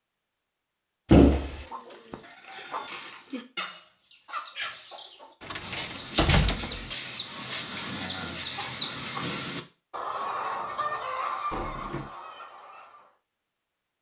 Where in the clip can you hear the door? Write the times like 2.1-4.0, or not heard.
1.1-1.6, 5.4-6.8, 11.5-12.1.